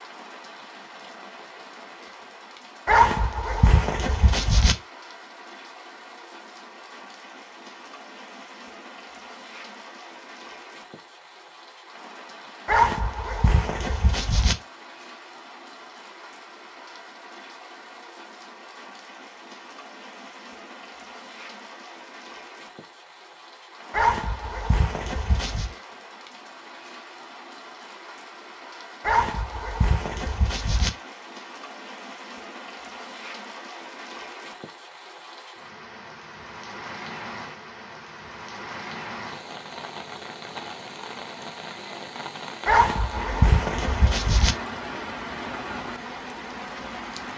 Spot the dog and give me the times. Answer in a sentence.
The dog can be heard from 2.9 to 4.8 s, from 12.7 to 14.6 s, from 23.9 to 25.8 s, from 29.0 to 30.9 s and from 42.6 to 44.5 s.